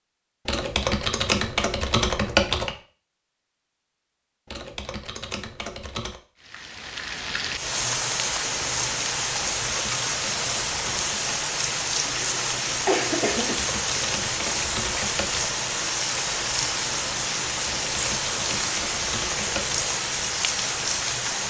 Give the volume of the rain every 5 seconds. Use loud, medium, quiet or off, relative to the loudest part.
off, loud, loud, loud, loud.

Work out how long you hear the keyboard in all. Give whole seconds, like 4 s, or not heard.
10 s.